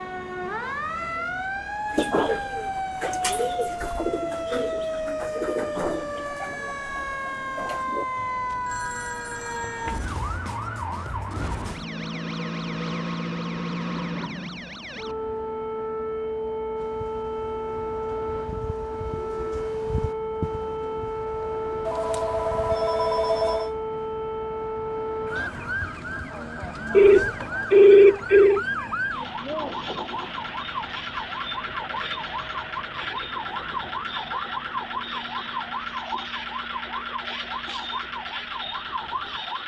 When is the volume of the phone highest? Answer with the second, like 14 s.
28 s.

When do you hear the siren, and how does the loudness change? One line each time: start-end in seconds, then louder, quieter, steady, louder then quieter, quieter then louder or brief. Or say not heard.
0.0-39.6 steady.